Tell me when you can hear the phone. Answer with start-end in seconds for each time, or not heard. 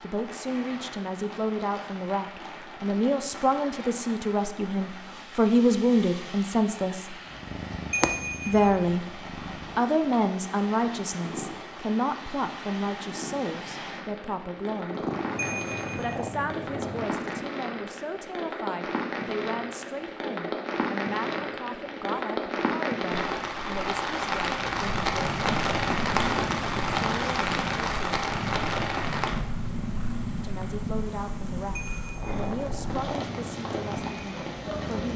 7.9-8.8, 15.3-16.2, 31.8-32.4.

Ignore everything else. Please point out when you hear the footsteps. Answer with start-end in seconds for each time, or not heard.
not heard.